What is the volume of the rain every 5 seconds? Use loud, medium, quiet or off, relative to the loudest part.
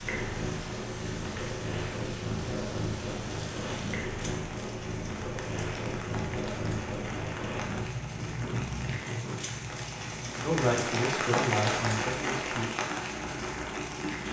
medium, medium, loud.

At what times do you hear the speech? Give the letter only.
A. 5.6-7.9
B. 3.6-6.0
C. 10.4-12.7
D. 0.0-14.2
C.